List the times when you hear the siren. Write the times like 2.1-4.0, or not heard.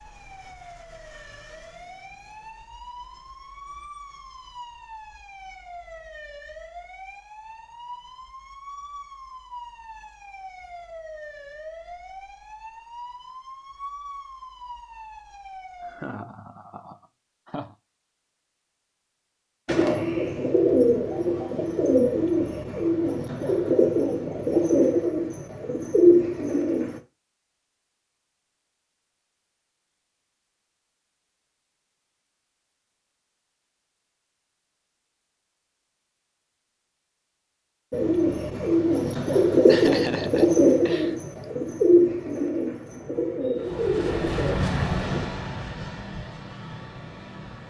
0.0-16.1.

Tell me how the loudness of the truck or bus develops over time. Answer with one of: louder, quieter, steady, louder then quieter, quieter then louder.
quieter.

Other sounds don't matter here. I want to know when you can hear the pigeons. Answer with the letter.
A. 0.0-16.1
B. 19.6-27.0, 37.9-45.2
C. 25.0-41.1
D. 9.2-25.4
B.